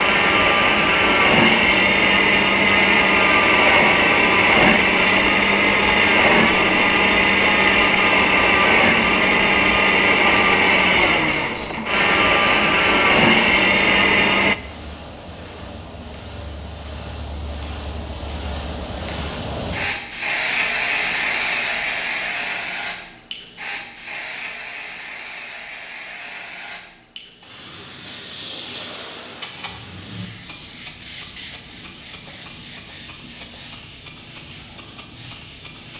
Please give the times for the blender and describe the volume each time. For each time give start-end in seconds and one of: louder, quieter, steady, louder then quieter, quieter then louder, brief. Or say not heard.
0.0-14.6 steady.